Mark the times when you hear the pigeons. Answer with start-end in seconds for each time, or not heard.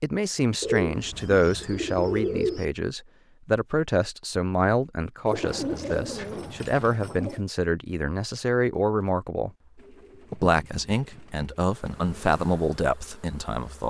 0.6-2.6, 5.2-7.4, 9.8-12.2.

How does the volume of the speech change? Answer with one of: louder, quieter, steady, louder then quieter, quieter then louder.
steady.